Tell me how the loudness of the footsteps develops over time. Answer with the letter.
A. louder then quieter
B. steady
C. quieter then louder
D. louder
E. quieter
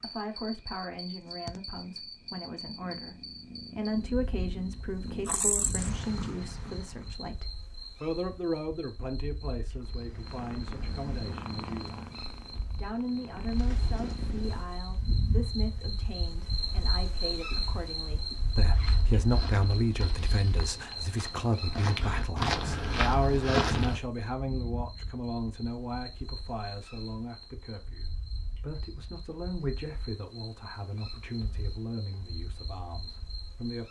D.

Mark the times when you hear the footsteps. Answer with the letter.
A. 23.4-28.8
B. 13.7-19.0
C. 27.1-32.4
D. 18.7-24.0
D.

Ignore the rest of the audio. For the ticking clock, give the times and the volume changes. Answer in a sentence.
The ticking clock can't be heard in this clip.